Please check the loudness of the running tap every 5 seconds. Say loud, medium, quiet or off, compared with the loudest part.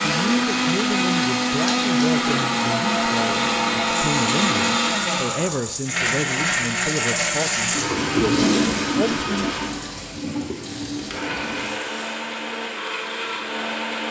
medium, loud, medium.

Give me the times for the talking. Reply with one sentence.
You can hear the talking from 0.0 to 9.5 s.